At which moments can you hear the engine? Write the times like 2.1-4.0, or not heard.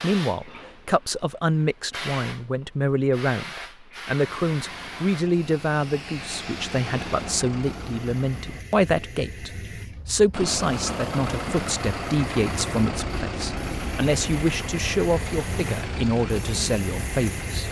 4.2-8.7, 10.3-17.6.